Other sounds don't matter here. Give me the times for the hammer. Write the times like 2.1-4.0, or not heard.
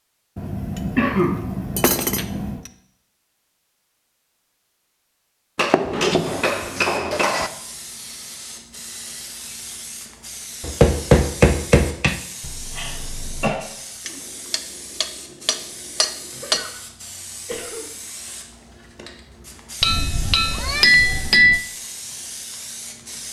0.3-2.7, 5.5-7.5, 10.6-12.2, 14.1-16.6, 19.8-21.6.